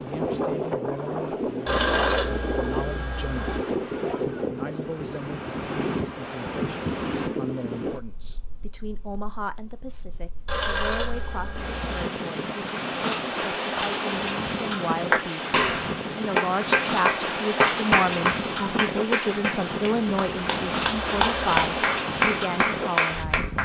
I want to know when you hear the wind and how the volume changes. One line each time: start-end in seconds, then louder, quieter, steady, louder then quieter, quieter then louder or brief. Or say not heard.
0.0-23.6 steady.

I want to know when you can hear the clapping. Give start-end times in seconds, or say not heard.
15.1-23.6.